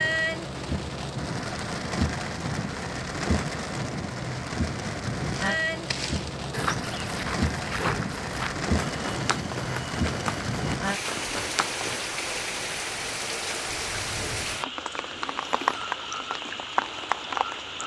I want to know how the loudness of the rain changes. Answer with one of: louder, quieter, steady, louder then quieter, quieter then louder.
steady.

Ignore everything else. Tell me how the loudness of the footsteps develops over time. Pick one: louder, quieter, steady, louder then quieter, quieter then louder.
steady.